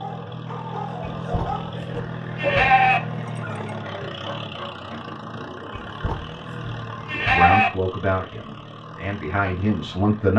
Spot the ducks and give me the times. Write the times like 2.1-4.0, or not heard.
not heard.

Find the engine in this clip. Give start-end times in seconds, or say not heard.
0.0-10.3.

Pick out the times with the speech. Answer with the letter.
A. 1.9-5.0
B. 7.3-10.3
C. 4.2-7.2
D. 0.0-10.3
B.